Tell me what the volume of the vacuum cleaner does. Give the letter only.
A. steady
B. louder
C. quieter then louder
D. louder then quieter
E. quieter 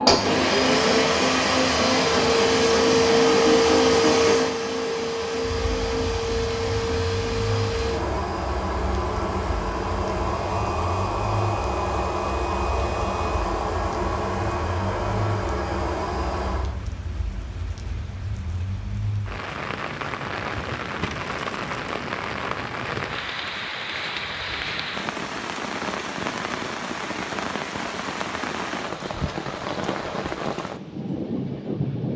E.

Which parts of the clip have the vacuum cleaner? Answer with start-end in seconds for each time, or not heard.
0.0-16.8.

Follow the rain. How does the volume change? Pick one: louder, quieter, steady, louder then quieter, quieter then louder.
louder.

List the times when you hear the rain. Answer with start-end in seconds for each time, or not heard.
5.4-32.1.